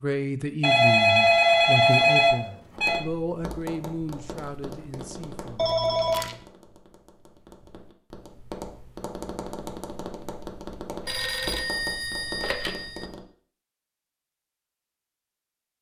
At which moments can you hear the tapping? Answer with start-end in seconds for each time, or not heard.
2.7-13.2.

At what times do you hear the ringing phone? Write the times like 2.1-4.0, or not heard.
0.6-3.0, 5.5-6.3, 11.1-13.1.